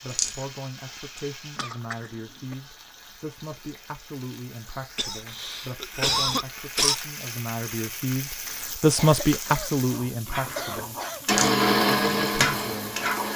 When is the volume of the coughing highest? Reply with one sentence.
The volume of the coughing peaks at 6 seconds.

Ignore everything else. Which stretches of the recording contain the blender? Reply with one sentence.
The blender can be heard from 11.2 to 13.3 s.